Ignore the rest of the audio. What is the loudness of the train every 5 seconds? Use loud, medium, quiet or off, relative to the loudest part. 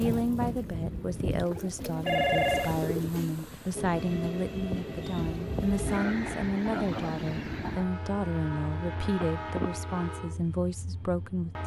loud, loud, medium.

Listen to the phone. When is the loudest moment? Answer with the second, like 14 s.
2 s.